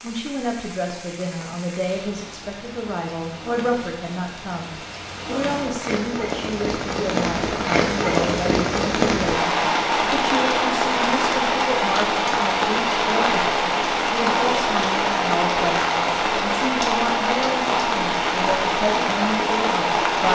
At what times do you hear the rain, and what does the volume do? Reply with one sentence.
You can hear the rain from 0.0 to 20.2 s, getting louder.